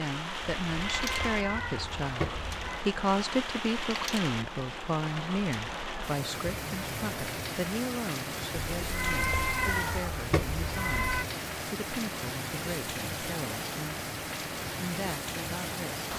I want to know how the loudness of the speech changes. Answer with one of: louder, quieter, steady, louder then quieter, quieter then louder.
quieter.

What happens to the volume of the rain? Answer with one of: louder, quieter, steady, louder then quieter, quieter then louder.
steady.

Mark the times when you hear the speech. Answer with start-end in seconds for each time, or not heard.
0.0-16.1.